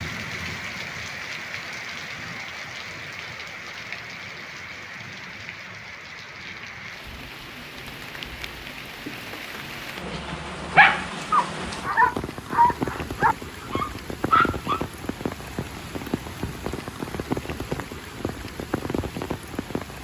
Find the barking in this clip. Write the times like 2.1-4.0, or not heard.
10.0-14.8.